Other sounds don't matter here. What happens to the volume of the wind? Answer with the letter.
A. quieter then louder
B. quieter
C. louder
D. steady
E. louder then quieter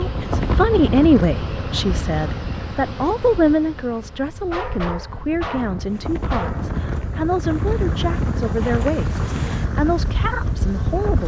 A.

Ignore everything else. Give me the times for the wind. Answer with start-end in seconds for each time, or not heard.
0.0-11.2.